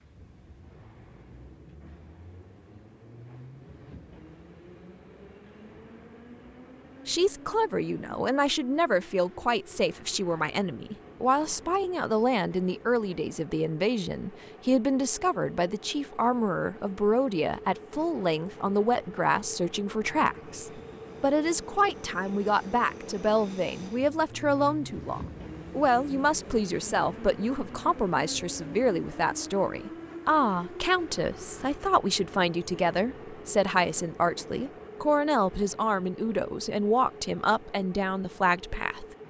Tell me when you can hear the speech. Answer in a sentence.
The speech can be heard from 7.0 to 39.0 s.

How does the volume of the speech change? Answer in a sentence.
The loudness of the speech stays about the same.